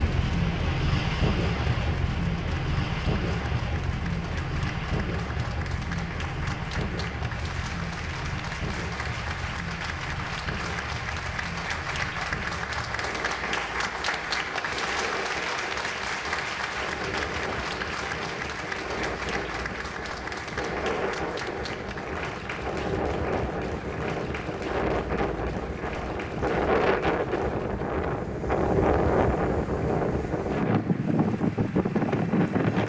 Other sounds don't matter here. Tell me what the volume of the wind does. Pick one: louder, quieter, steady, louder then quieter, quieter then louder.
quieter then louder.